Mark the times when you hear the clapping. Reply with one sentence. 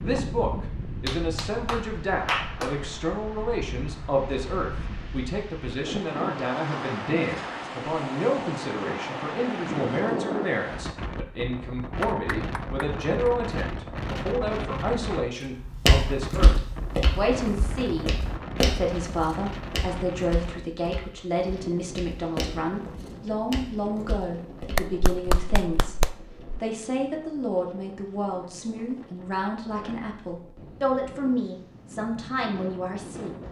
The clapping can be heard from 1.1 to 2.8 s, from 12.0 to 13.3 s and from 24.6 to 26.4 s.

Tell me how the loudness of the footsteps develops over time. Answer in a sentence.
The loudness of the footsteps goes down.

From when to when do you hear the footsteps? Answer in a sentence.
You can hear the footsteps from 15.6 to 24.9 s.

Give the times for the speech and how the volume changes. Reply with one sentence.
You can hear the speech from 0.0 to 16.5 s, at a steady volume; and from 17.1 to 33.4 s, at a steady volume.